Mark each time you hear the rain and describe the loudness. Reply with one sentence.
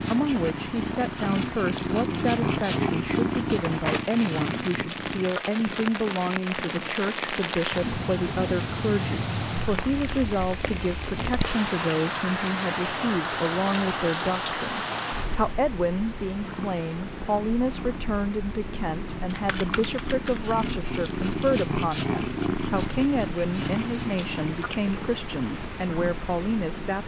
You can hear the rain from 0.0 to 27.0 s, getting louder then quieter.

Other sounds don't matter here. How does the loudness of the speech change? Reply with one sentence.
The volume of the speech stays about the same.